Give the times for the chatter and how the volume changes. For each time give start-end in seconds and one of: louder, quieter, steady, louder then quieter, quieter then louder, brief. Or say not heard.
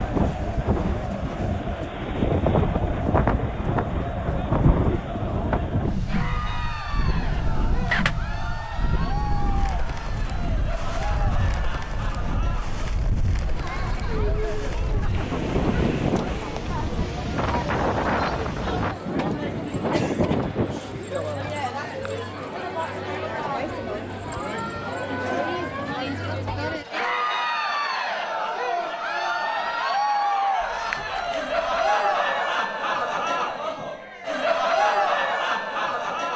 0.0-36.3 louder.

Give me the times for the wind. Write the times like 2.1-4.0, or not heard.
0.0-21.0.